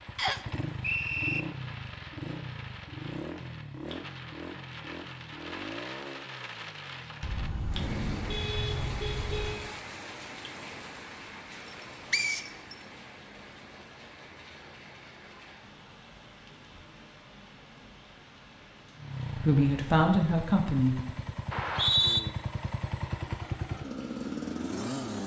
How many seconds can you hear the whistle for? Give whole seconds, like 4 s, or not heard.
3 s.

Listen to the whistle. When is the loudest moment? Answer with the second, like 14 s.
22 s.